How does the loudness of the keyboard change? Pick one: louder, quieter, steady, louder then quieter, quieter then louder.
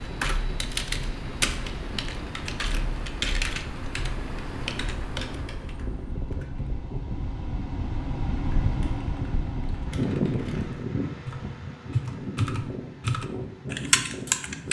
quieter then louder.